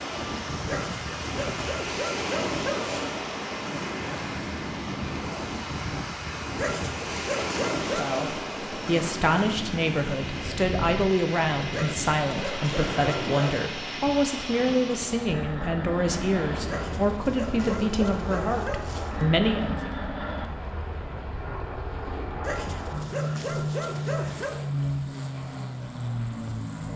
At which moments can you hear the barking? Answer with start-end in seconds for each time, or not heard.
0.7-3.1, 6.5-8.1, 11.7-13.7, 16.6-19.3, 22.4-24.6.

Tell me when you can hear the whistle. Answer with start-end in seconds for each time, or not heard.
not heard.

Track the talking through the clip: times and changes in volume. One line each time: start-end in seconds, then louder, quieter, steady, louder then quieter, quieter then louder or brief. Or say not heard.
7.8-19.9 steady.